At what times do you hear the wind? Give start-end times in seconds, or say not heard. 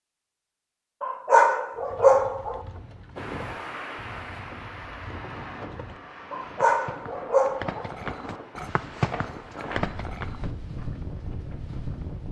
3.1-12.2.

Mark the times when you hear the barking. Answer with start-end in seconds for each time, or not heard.
1.0-2.6, 6.3-7.9.